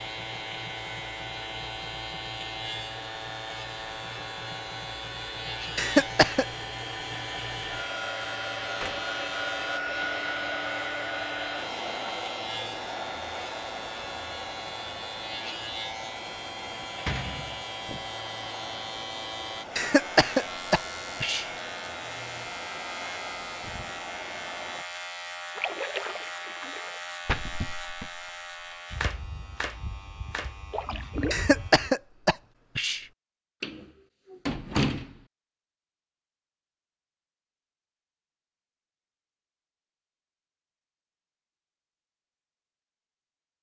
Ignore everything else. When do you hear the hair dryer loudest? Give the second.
10 s.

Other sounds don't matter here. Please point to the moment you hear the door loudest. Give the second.
35 s.